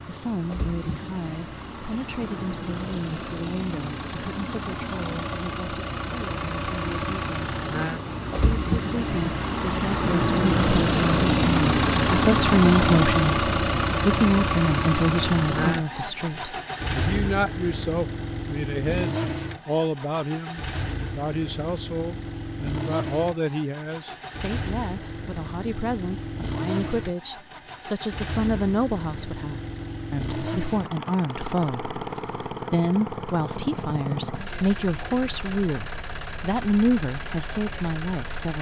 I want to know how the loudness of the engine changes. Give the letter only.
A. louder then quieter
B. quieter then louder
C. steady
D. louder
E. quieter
A.